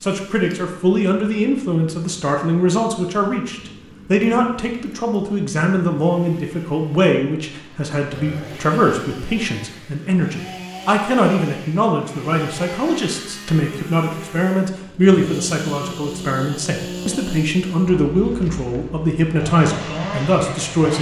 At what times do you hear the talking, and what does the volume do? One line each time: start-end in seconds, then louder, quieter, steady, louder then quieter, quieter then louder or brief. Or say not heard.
0.0-20.9 steady.